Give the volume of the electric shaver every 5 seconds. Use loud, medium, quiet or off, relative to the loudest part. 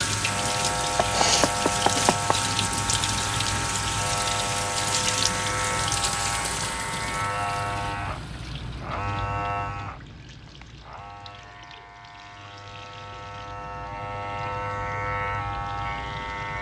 loud, loud, medium, loud.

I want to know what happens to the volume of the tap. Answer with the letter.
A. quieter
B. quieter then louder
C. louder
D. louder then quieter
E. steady
A.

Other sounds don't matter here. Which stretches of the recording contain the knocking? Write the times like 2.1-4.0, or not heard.
1.0-2.4.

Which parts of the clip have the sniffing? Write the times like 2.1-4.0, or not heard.
1.1-2.1.